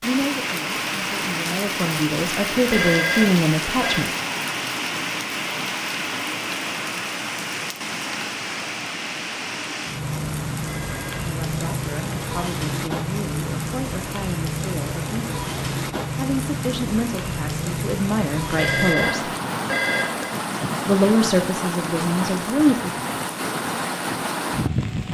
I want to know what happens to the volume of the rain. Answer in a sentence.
The loudness of the rain stays about the same.